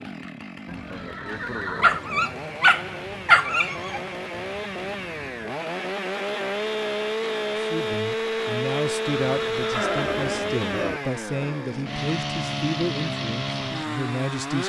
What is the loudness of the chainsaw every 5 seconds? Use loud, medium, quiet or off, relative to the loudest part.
medium, loud, loud.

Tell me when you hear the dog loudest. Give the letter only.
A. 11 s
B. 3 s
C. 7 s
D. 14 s
B.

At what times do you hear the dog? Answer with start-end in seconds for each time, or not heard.
1.8-4.0.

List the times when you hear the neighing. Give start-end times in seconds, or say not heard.
0.7-2.0, 9.2-11.0.